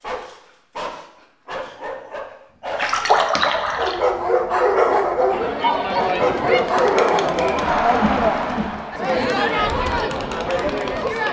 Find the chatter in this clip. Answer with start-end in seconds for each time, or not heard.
5.3-11.2.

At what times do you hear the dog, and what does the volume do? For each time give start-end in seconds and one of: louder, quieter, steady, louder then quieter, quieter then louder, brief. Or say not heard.
0.0-7.7 louder.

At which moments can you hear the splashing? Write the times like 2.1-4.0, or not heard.
2.8-4.0.